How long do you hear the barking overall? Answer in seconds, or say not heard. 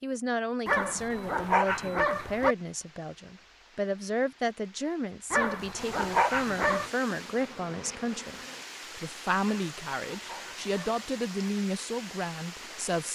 5 s.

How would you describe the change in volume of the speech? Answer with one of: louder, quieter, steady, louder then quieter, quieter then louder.
steady.